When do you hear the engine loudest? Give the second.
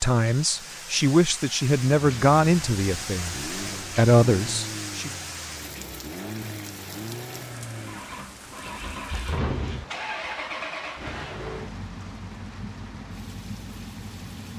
10 s.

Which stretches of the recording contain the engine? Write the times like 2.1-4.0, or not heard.
1.9-14.5.